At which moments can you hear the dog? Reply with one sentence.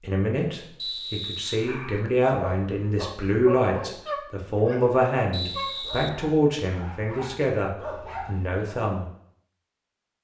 The dog can be heard from 1.5 to 8.8 s.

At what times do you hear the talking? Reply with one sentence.
You can hear the talking from 0.0 to 9.1 s.